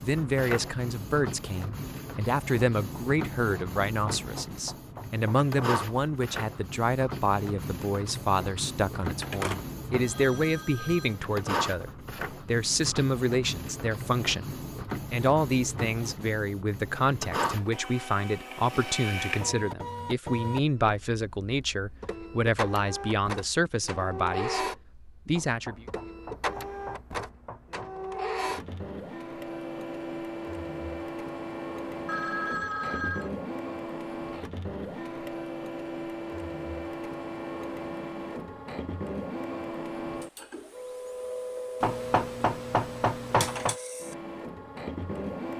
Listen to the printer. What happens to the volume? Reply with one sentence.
The loudness of the printer stays about the same.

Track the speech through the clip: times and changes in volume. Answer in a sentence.
The speech can be heard from 0.0 to 25.9 s, at a steady volume.